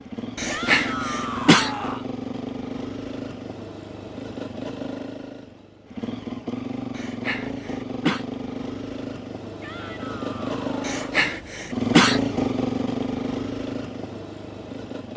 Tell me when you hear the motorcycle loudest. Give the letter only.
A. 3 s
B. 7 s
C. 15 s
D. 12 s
D.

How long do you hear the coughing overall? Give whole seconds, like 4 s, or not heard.
4 s.